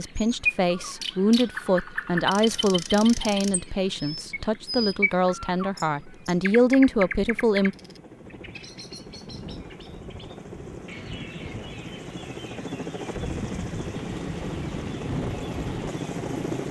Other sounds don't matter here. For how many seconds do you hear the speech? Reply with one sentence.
The speech can be heard for 8 seconds in total.